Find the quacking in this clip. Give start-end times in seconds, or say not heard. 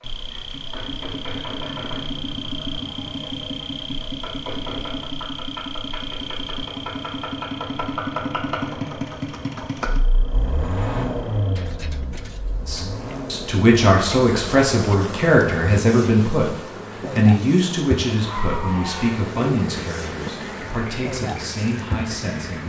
not heard.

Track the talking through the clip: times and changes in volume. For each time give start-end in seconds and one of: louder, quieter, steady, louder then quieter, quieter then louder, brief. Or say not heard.
12.7-22.6 quieter.